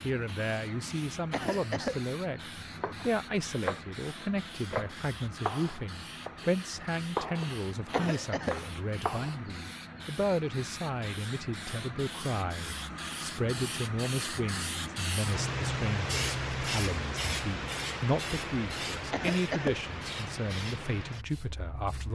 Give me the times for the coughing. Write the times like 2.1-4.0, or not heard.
1.3-2.0, 7.9-8.6, 19.1-19.8.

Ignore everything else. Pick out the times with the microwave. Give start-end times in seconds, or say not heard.
not heard.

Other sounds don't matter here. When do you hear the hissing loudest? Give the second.
16 s.